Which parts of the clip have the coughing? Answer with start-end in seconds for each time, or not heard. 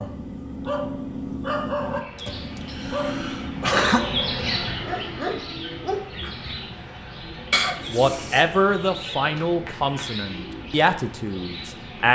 2.1-4.0, 7.5-8.9.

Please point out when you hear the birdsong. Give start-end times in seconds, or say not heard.
1.8-12.0.